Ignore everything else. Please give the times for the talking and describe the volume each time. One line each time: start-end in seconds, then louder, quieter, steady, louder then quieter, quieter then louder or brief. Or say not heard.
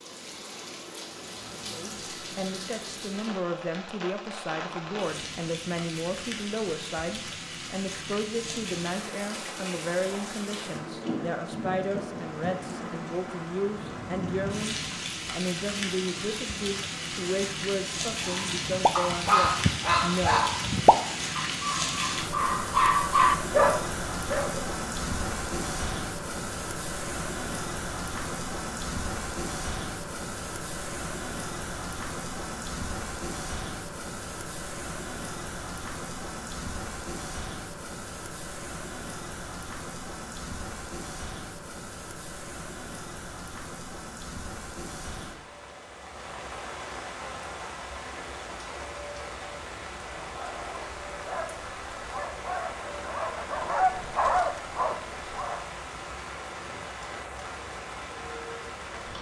1.7-20.4 steady.